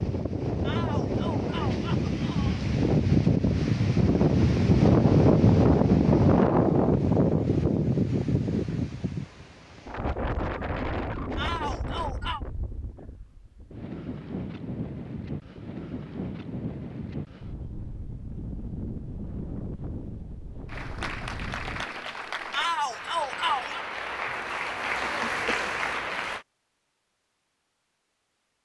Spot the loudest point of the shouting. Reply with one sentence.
The loudest moment of the shouting is at 23 seconds.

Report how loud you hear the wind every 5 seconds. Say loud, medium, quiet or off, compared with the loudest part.
loud, loud, quiet, quiet, quiet, off.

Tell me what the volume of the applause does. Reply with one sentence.
The loudness of the applause goes up.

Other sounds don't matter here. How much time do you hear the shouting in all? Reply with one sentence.
The shouting can be heard for 4 seconds in total.